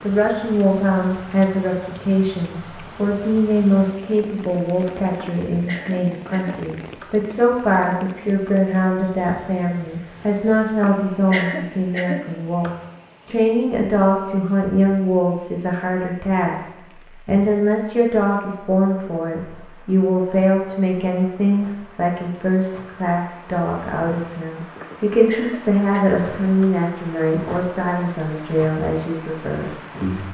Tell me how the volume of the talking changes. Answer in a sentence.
The loudness of the talking stays about the same.